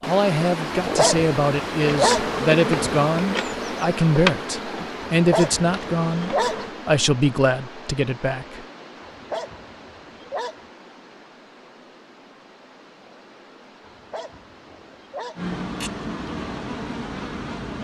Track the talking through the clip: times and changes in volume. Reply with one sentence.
The talking can be heard from 0.0 to 8.7 s, at a steady volume.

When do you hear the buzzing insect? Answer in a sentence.
You can hear the buzzing insect from 1.8 to 6.7 s and from 15.3 to 17.7 s.